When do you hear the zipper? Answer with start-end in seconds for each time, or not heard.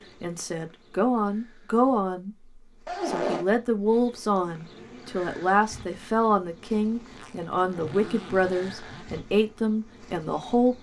2.9-3.5, 7.1-9.1.